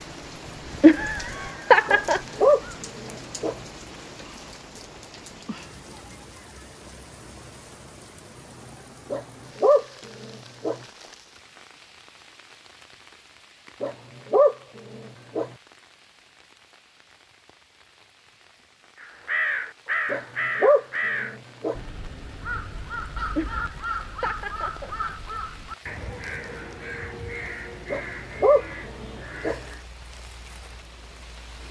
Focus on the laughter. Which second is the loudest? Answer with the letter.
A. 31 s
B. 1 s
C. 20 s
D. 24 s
B.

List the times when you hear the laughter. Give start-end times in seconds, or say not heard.
0.8-2.2, 23.4-25.4.